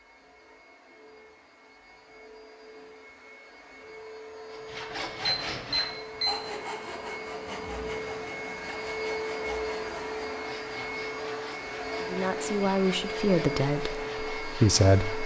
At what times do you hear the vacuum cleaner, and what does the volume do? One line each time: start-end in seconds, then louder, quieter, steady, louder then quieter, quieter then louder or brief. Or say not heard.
0.0-15.2 louder.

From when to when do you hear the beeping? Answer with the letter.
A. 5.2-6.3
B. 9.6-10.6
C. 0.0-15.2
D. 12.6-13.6
A.